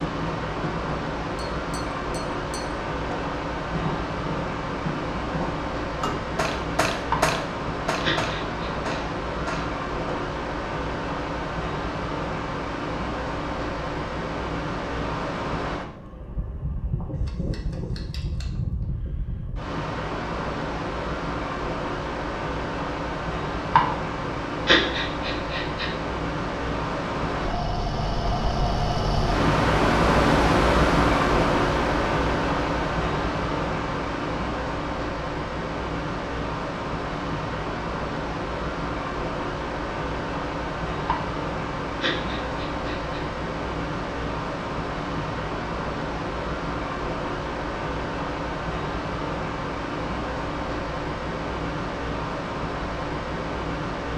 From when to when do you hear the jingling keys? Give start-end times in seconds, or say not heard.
not heard.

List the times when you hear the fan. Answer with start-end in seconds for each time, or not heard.
0.0-54.1.